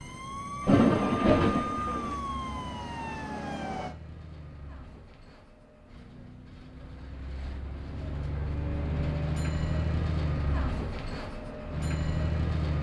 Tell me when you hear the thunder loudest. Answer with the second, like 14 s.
1 s.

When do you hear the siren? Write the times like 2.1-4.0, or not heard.
0.0-4.0.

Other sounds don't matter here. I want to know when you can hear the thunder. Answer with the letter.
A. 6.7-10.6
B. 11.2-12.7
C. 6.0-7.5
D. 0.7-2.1
D.